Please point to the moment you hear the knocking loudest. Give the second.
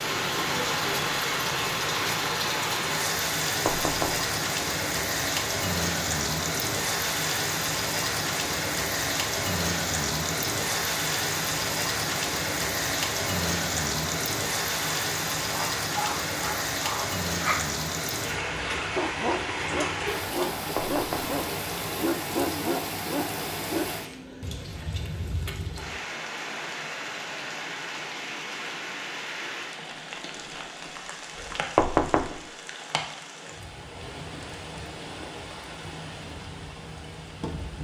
32 s.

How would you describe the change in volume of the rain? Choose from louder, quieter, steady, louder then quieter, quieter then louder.
quieter.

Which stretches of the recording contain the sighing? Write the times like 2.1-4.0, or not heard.
not heard.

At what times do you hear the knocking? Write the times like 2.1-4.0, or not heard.
3.6-4.2, 20.8-21.4, 31.8-32.4.